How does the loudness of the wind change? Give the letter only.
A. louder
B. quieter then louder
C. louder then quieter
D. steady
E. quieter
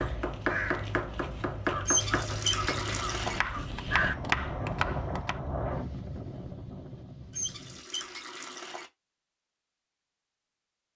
C.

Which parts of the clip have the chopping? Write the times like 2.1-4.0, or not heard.
0.0-5.4.